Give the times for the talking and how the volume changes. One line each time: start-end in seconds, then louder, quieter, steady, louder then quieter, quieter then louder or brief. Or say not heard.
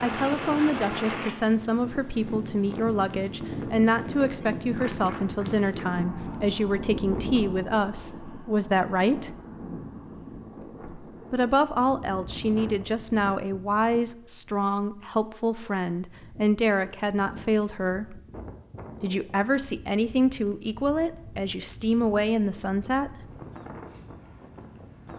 0.0-9.3 steady
11.3-18.2 steady
19.0-23.1 steady.